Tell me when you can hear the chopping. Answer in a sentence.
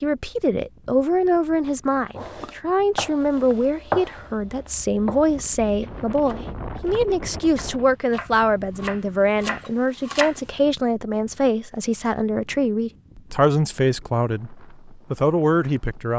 The chopping can be heard from 2.1 to 10.4 s.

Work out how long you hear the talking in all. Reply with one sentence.
The talking can be heard for 16 seconds in total.